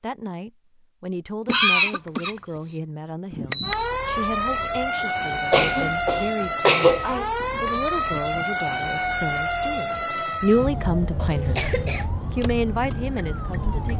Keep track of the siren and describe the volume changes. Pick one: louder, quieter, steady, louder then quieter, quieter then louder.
quieter.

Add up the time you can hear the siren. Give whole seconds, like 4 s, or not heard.
10 s.